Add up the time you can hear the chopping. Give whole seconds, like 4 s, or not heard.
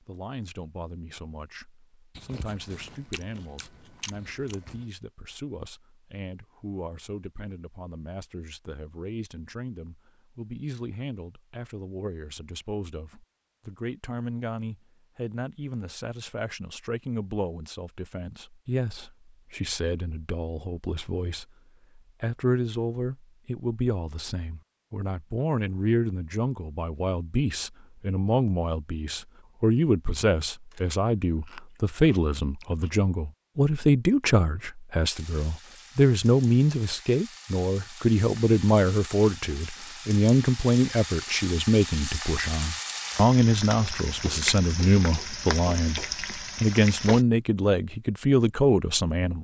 not heard.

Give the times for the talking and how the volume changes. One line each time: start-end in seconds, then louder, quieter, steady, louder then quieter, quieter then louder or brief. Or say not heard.
0.0-49.4 louder.